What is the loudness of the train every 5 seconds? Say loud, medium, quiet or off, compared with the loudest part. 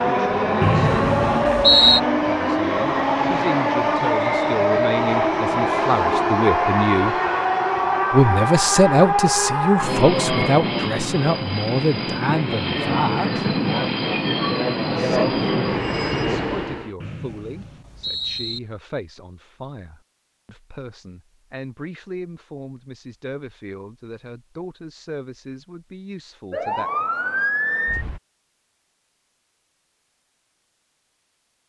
loud, loud, loud, loud, off, off, off.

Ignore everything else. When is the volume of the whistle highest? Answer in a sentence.
The loudest moment of the whistle is at 2 seconds.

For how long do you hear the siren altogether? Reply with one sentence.
You can hear the siren for 2 seconds altogether.